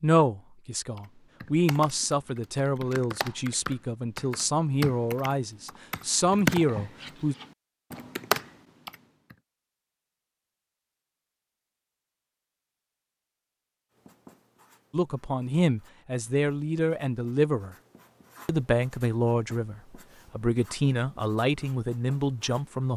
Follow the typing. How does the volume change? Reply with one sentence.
The loudness of the typing goes up.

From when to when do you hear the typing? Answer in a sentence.
You can hear the typing from 0.9 to 9.3 s.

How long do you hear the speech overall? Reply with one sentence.
The speech can be heard for 15 seconds in total.